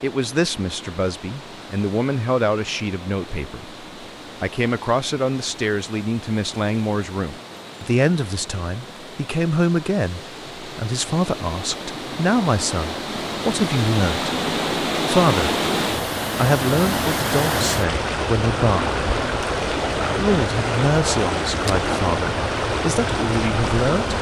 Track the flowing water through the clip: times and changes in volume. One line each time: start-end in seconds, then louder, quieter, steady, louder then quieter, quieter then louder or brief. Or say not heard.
0.0-24.1 louder.